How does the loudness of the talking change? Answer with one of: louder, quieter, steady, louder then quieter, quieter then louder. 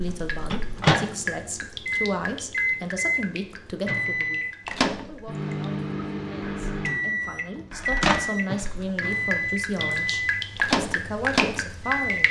quieter then louder.